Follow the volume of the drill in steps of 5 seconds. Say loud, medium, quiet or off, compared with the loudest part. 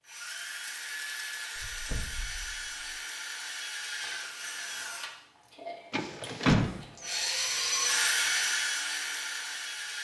medium, loud.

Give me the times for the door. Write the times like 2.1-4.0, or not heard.
1.6-2.9, 5.9-7.2.